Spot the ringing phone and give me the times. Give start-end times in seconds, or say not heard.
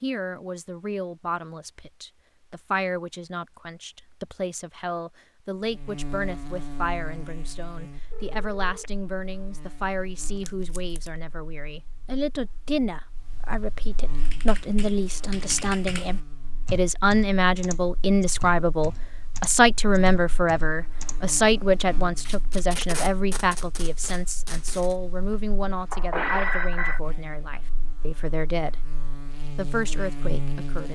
8.1-8.9, 25.9-27.0.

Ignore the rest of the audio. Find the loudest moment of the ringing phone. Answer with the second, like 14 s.
26 s.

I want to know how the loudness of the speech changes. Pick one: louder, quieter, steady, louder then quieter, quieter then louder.
louder then quieter.